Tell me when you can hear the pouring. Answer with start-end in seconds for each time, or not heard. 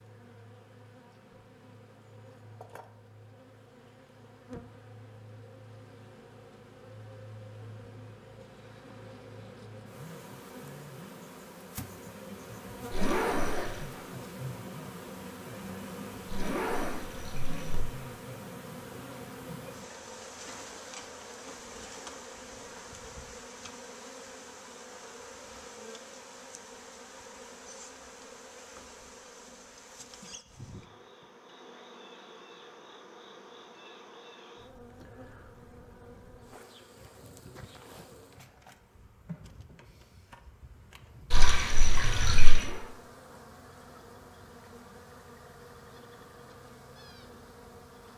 12.9-13.8, 16.2-17.9, 41.3-42.7.